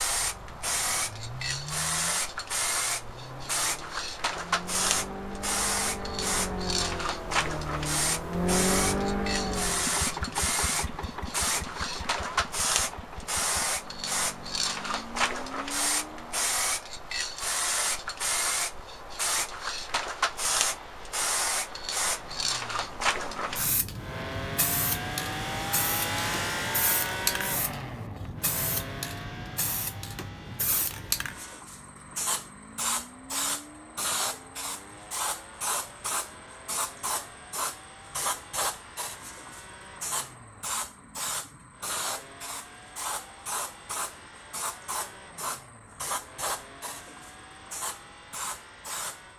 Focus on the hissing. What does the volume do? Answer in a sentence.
The loudness of the hissing goes down.